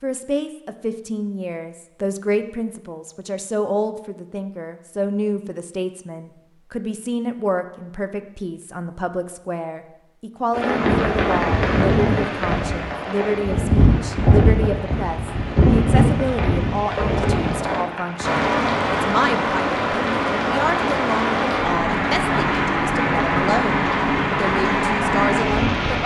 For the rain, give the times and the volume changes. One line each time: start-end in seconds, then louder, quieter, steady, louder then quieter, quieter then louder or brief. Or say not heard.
10.5-26.0 steady.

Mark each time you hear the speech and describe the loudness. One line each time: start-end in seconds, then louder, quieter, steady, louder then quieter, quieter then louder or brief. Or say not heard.
0.0-26.0 steady.